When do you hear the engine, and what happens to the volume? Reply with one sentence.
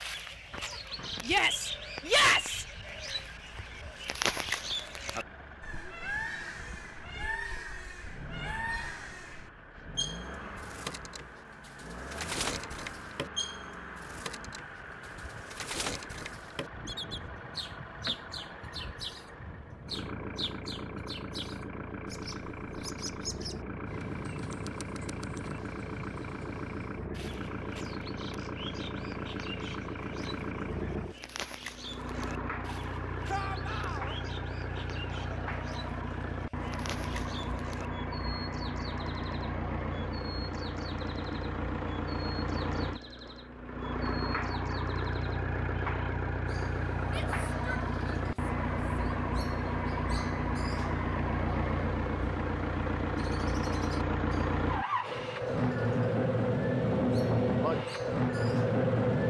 You can hear the engine from 0.0 to 59.2 s, getting louder.